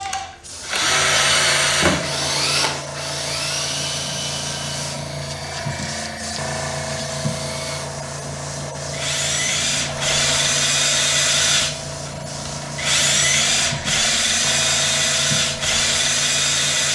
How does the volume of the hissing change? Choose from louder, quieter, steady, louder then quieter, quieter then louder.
steady.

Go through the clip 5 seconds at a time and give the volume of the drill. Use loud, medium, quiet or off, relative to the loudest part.
loud, medium, loud, loud.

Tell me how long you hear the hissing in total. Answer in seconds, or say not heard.
17 s.